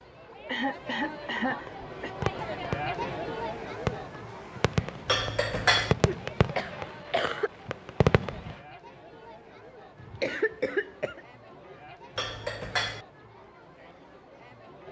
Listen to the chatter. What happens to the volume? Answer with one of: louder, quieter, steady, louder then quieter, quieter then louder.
quieter.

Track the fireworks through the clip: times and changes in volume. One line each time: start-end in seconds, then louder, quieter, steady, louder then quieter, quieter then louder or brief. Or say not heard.
1.0-8.6 louder.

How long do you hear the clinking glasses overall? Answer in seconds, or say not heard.
2 s.